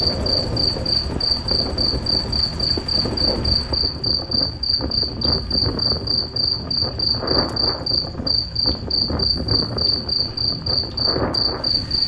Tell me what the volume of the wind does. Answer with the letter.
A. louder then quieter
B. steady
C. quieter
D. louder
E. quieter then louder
B.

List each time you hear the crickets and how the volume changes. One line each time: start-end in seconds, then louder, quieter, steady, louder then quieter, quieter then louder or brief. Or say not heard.
0.0-12.0 steady.